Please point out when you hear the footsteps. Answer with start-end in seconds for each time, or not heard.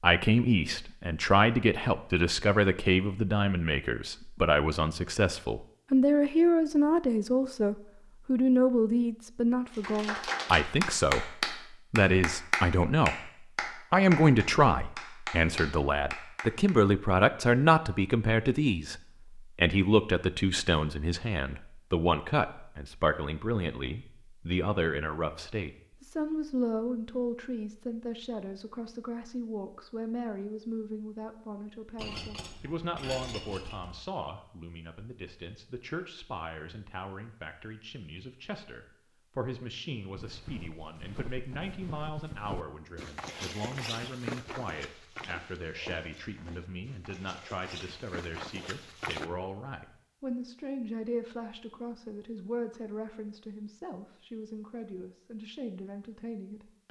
40.1-49.3.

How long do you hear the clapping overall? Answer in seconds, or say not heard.
7 s.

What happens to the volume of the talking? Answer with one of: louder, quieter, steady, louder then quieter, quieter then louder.
quieter.